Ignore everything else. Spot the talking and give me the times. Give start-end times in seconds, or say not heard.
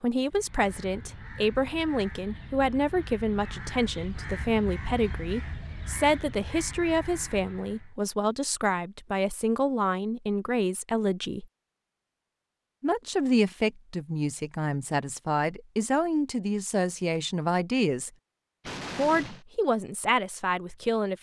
0.0-11.4, 12.8-18.1, 18.9-21.1.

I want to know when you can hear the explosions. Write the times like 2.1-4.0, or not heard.
18.6-19.4.